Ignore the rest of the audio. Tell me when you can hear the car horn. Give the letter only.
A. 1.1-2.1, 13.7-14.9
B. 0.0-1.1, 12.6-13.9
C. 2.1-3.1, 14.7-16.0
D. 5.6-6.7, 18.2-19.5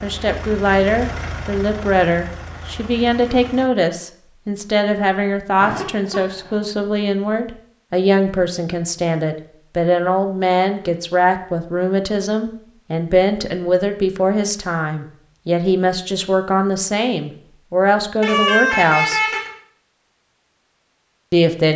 D.